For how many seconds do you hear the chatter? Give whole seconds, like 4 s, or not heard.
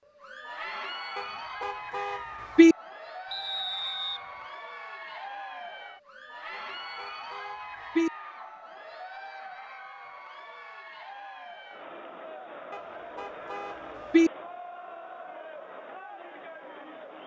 17 s.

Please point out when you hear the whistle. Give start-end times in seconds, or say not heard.
3.3-4.2.